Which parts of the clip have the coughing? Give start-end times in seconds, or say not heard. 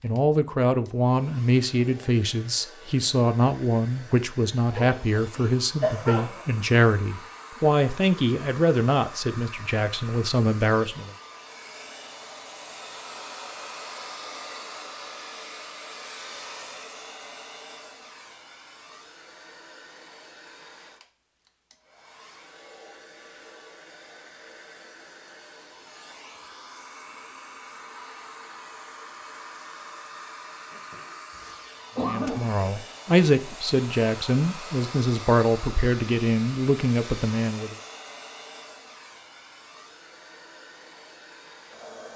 4.8-6.6, 30.7-32.6.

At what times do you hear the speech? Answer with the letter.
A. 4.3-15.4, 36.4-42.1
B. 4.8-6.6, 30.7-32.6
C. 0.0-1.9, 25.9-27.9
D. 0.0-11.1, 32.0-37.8
D.